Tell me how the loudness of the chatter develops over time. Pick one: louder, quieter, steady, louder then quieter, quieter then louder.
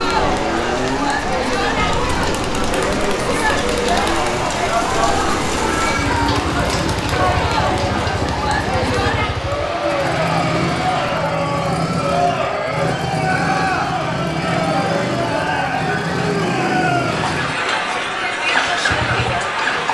steady.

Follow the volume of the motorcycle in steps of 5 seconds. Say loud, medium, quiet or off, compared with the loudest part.
loud, medium, loud, loud.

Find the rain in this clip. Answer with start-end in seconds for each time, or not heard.
0.0-11.2.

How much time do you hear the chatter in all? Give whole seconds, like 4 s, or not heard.
20 s.